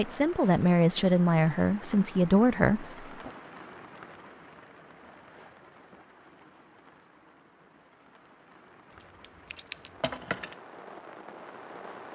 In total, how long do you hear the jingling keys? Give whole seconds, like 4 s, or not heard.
2 s.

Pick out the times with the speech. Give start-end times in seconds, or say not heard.
0.0-3.3.